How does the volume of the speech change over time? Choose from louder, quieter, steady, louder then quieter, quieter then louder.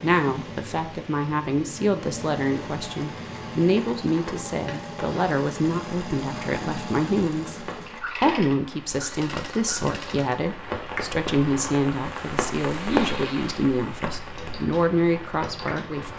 steady.